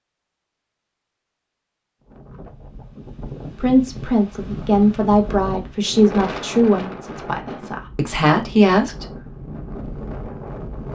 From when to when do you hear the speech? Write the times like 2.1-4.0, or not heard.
3.5-9.1.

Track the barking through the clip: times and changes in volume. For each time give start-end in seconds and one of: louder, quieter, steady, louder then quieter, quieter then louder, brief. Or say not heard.
not heard.